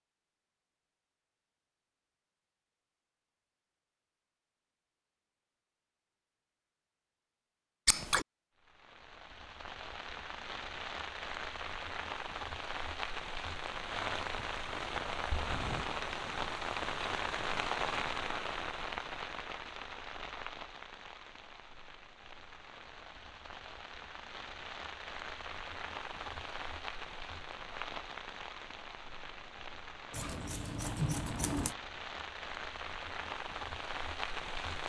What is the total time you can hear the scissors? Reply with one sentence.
You can hear the scissors for 2 seconds altogether.